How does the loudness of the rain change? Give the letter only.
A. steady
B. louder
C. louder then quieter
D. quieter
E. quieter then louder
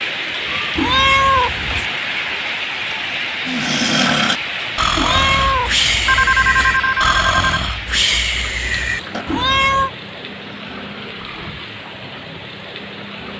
D.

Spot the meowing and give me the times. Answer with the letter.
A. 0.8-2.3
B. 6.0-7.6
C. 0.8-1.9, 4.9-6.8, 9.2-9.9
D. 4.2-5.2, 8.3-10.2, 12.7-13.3
C.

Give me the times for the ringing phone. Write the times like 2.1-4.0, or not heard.
6.0-7.6.